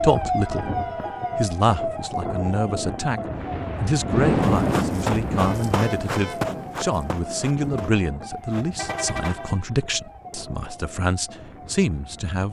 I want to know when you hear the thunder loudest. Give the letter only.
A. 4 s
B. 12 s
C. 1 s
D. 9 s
A.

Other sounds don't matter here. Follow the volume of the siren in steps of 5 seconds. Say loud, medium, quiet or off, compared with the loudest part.
loud, medium, quiet.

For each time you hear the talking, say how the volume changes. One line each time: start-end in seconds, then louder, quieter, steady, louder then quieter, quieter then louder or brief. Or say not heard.
0.0-0.7 brief
1.4-3.2 brief
3.8-12.4 steady.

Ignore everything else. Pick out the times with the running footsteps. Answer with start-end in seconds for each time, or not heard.
4.4-9.6.